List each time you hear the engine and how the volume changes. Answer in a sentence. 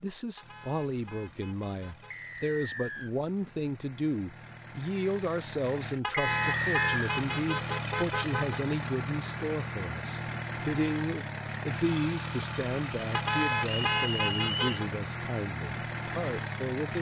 You can hear the engine from 0.2 to 16.9 s, getting louder.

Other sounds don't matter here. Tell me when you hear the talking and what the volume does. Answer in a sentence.
You can hear the talking from 0.0 to 16.9 s, at a steady volume.